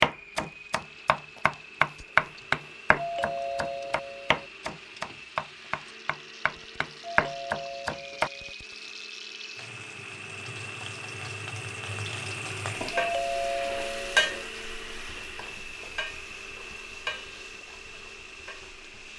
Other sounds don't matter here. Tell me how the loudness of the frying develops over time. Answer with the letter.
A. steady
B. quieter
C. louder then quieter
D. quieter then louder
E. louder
C.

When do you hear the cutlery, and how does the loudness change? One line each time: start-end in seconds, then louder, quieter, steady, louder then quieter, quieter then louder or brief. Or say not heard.
not heard.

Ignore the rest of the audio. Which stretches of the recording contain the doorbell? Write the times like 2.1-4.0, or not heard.
3.0-4.5, 7.0-8.6, 12.9-14.4.